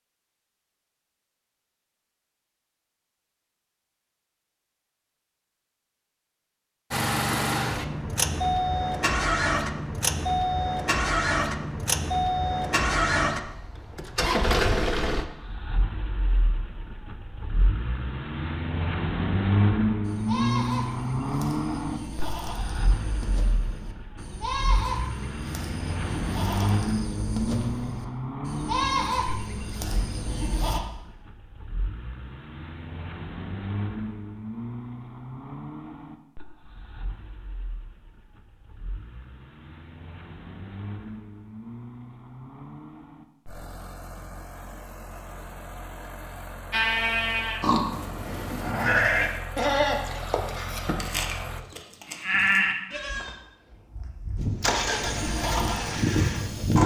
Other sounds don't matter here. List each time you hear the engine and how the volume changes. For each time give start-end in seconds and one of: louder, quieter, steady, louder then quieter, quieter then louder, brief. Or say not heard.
6.9-51.6 quieter
54.4-56.8 brief.